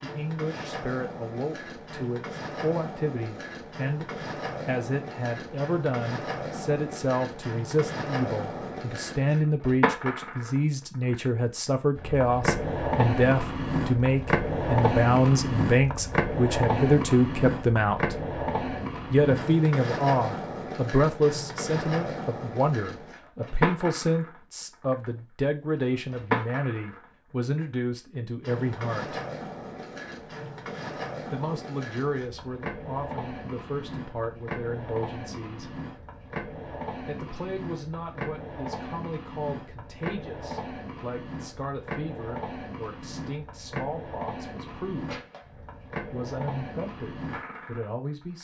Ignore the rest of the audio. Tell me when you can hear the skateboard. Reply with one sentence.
The skateboard can be heard from 0.0 to 48.3 s.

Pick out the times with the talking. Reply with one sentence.
The talking can be heard from 0.0 to 18.1 s, from 19.1 to 29.2 s, from 31.3 to 35.8 s, from 37.0 to 45.2 s and from 46.0 to 48.3 s.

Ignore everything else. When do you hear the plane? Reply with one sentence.
The plane can't be heard in this clip.